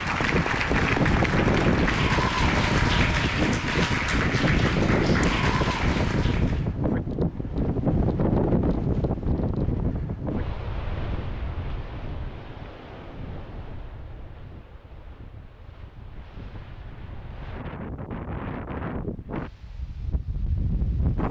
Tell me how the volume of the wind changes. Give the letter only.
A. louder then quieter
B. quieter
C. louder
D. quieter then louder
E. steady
D.